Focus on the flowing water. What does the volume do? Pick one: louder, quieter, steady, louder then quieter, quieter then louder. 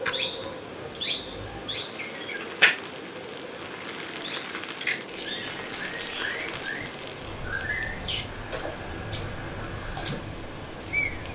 steady.